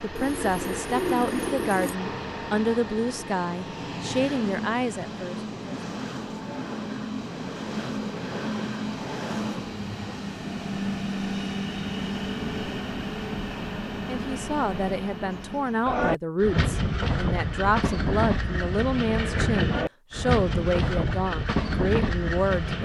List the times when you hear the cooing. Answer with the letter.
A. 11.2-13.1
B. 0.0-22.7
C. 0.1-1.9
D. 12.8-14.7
C.